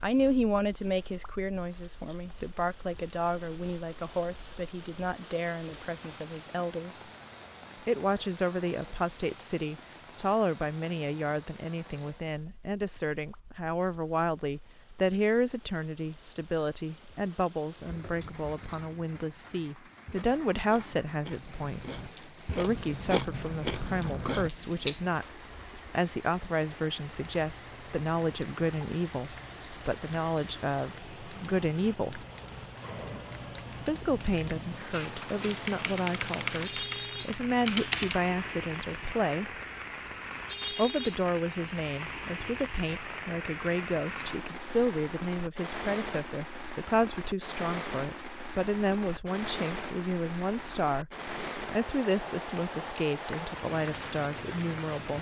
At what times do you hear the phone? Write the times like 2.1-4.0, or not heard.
not heard.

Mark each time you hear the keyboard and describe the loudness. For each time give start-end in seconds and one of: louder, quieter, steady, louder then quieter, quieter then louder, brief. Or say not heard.
27.1-38.2 louder.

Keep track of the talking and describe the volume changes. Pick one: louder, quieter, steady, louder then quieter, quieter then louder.
steady.